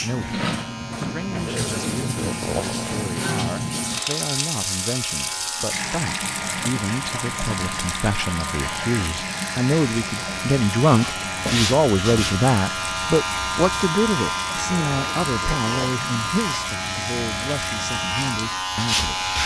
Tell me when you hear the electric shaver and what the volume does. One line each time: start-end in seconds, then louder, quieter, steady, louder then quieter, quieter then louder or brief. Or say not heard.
0.0-19.4 louder.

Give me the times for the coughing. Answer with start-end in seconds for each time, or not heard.
not heard.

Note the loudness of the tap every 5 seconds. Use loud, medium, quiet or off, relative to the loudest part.
loud, loud, medium, medium.